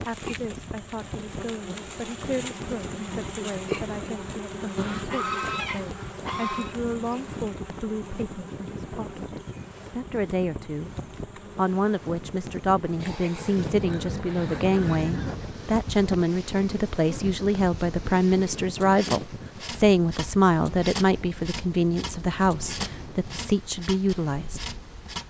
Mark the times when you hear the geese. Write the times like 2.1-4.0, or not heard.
4.8-6.8, 13.6-15.4.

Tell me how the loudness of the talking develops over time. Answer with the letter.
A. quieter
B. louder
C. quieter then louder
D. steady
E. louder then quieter
B.